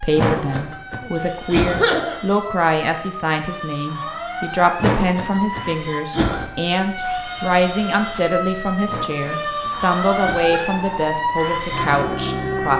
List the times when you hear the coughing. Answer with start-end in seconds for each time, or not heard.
0.1-2.2, 4.8-6.4, 8.8-10.7.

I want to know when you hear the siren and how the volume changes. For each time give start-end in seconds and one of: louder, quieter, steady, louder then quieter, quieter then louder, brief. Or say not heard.
0.0-12.7 louder.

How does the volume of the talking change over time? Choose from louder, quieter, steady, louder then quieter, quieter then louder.
steady.